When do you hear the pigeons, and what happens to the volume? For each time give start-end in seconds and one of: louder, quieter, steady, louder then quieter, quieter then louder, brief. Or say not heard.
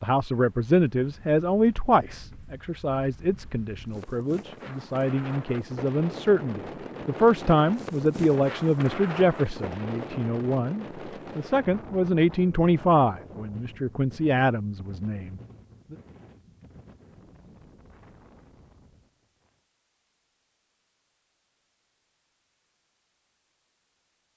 not heard.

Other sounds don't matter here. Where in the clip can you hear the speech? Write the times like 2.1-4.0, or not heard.
0.0-15.9.